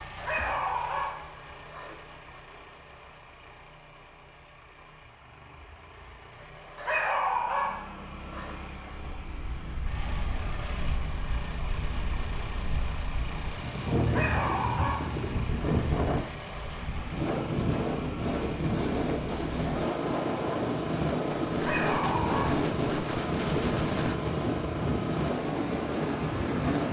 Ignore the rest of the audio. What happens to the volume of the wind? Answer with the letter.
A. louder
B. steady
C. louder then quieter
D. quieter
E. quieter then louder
A.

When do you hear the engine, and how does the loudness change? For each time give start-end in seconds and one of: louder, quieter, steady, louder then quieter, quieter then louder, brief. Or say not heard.
0.0-26.8 louder.